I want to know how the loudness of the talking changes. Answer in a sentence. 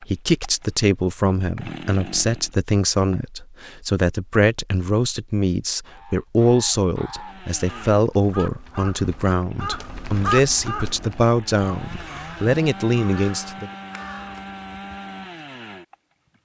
The loudness of the talking stays about the same.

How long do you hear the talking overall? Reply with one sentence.
The talking can be heard for 14 seconds in total.